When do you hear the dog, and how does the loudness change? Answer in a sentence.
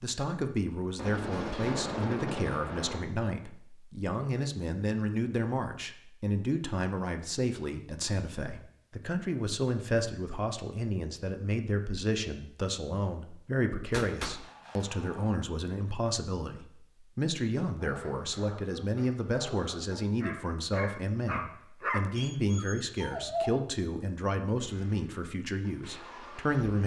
You can hear the dog from 17.8 to 23.5 s, getting louder then quieter.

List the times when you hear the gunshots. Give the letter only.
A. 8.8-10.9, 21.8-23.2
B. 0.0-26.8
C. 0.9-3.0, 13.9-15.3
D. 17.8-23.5
C.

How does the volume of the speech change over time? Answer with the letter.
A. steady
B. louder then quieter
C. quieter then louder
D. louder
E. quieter
A.